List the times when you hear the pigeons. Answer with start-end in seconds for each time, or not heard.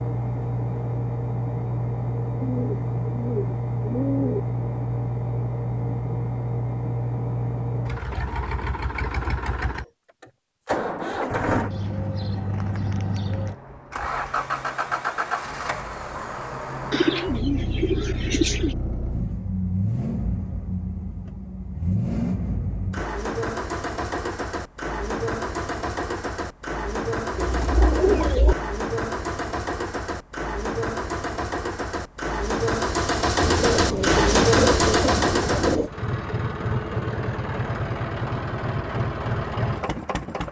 2.4-4.4, 11.7-13.6, 16.9-18.8, 27.4-28.6, 33.4-35.9.